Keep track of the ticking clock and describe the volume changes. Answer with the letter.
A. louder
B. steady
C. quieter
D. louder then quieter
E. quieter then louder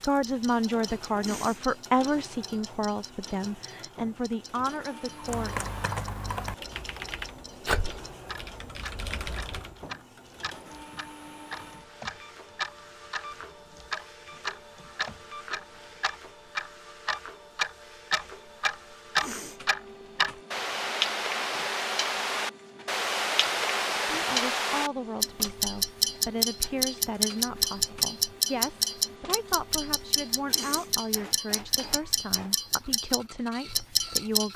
A.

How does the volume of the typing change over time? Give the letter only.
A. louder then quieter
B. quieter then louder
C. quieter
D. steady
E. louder
B.